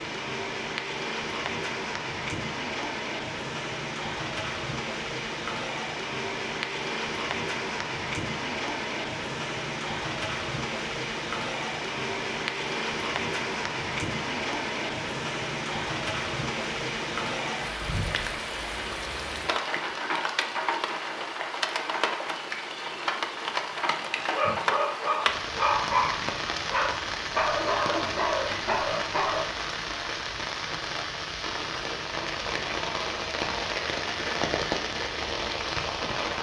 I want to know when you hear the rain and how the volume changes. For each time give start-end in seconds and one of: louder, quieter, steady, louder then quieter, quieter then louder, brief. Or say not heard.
0.0-36.3 steady.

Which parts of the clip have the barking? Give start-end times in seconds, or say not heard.
24.3-29.4.